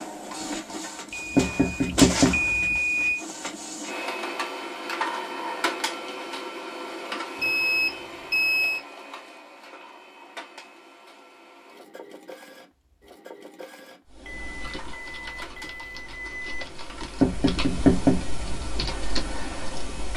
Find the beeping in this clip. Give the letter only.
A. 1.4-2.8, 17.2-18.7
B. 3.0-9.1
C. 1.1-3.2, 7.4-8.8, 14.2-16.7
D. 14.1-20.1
C.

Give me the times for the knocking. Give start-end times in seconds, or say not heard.
1.4-2.8, 17.2-18.7.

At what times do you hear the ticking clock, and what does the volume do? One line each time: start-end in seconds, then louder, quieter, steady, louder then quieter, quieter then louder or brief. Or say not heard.
not heard.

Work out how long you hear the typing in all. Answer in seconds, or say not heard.
6 s.